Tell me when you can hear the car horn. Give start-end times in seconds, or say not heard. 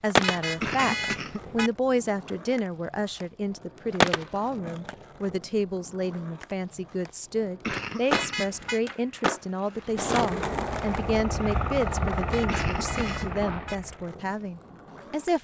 0.2-1.7, 8.1-8.8, 12.3-13.8.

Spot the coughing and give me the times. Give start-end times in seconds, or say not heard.
0.6-1.6, 7.6-8.6, 12.4-13.3.